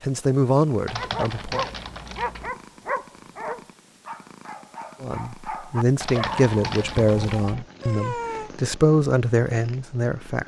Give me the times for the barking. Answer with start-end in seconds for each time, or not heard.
0.9-8.5.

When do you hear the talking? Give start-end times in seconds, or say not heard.
0.0-1.6, 5.0-10.4.